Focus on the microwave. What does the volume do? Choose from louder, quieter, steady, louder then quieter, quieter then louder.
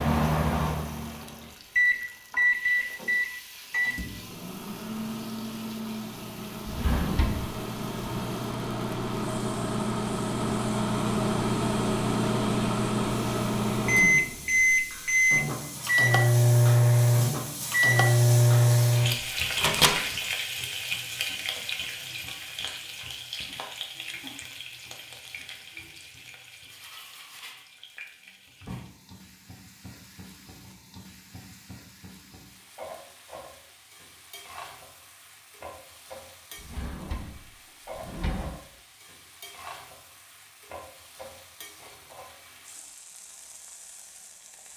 quieter then louder.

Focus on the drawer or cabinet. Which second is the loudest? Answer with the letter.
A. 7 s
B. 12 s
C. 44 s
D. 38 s
A.